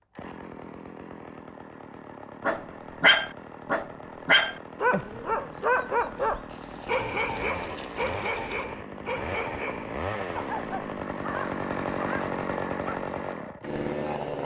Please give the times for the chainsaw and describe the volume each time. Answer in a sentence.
You can hear the chainsaw from 0.0 to 14.4 s, getting louder.